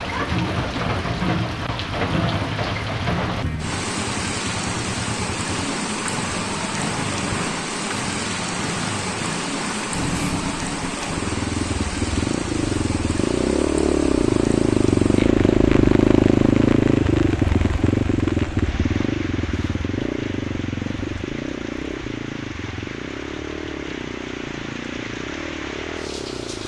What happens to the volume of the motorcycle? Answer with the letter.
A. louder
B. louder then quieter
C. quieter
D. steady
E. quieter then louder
B.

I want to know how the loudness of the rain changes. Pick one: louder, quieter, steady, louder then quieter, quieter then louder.
quieter.